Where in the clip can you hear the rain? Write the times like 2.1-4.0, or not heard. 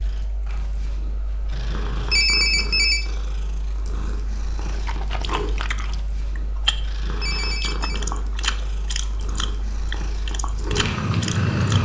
not heard.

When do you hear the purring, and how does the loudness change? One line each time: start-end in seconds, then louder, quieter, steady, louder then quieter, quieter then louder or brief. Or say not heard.
0.0-11.7 louder.